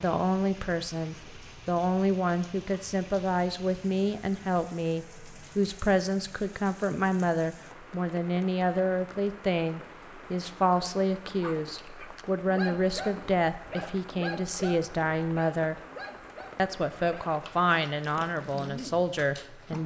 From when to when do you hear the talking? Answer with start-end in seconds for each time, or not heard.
0.0-15.8, 16.6-19.8.